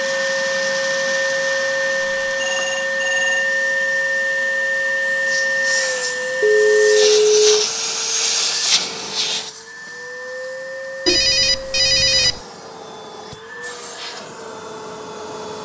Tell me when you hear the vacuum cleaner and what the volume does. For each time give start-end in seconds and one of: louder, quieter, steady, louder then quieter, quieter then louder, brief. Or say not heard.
0.0-15.5 quieter.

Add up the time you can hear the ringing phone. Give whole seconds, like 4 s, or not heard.
4 s.